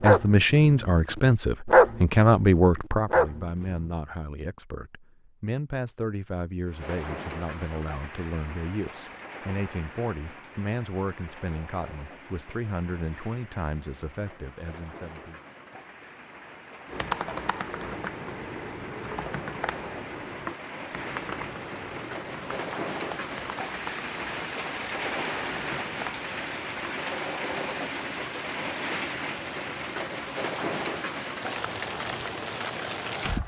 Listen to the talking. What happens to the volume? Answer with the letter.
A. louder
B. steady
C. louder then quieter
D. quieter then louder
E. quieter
E.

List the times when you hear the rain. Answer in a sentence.
The rain can be heard from 6.7 to 33.4 s.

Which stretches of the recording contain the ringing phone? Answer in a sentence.
You can't hear the ringing phone here.